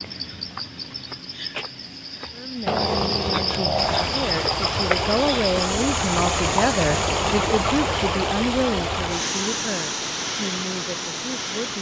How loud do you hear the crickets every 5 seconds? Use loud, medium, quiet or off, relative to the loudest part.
loud, loud, off.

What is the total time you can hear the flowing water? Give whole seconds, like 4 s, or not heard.
8 s.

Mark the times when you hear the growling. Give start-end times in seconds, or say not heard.
2.6-4.2, 6.9-7.5.